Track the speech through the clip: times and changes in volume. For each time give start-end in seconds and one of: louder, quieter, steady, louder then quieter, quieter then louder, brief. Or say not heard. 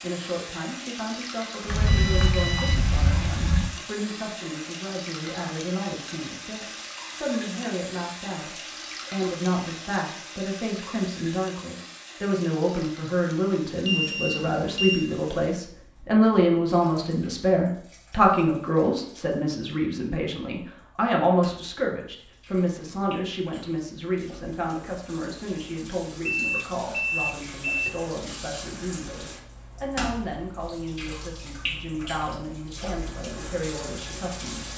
0.0-34.7 louder then quieter.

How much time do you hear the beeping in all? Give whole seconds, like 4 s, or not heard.
5 s.